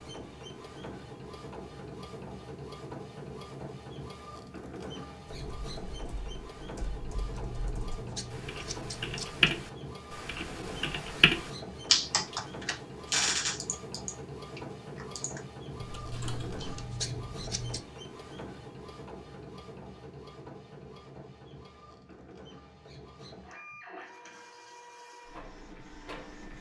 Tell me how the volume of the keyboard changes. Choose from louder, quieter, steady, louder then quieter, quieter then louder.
louder then quieter.